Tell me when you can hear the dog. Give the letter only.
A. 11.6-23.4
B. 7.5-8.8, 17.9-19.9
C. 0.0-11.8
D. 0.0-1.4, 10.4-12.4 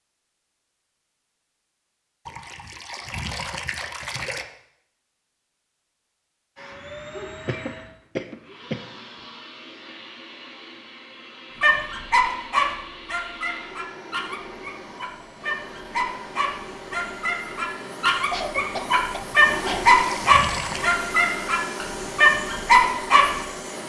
A.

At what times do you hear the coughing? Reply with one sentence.
You can hear the coughing from 7.5 to 8.8 s and from 17.9 to 19.9 s.